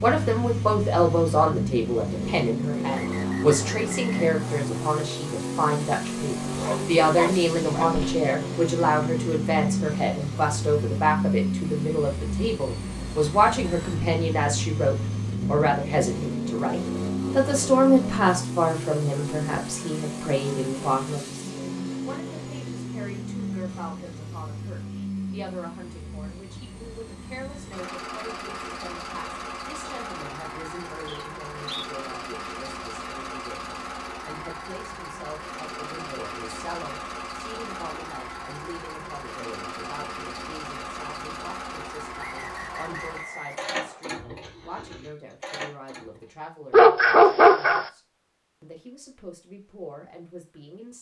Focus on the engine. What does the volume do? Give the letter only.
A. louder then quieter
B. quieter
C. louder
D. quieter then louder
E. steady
B.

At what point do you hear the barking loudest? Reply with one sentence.
The loudest moment of the barking is at 47 seconds.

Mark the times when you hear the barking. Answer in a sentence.
The barking can be heard from 6.5 to 8.2 s and from 46.7 to 47.9 s.